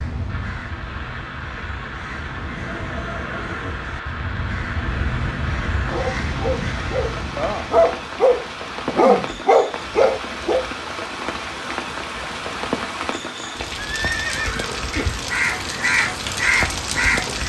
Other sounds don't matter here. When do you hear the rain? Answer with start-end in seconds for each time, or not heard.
0.0-17.4.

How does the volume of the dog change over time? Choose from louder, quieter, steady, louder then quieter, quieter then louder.
louder.